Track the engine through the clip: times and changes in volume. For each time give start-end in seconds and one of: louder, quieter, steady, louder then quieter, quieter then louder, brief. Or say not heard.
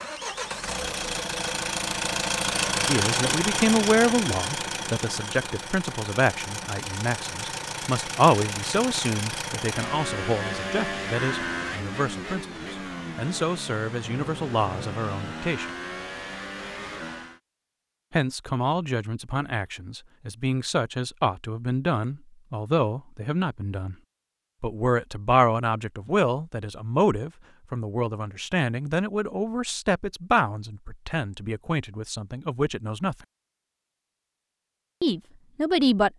0.0-17.4 quieter.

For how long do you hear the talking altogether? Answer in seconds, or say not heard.
28 s.